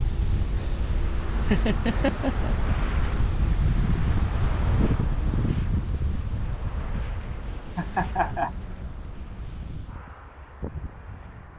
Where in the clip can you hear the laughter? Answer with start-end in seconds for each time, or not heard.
1.4-2.7, 7.8-8.5.